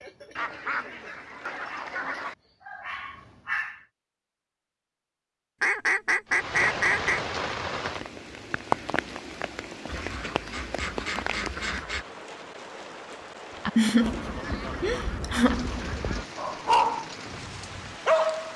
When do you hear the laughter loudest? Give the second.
14 s.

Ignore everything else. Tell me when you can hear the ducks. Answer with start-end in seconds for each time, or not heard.
0.3-2.4, 5.6-7.2, 9.8-12.1, 14.0-16.2.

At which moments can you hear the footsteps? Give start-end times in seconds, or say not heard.
not heard.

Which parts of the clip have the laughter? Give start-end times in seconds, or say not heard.
13.8-16.0.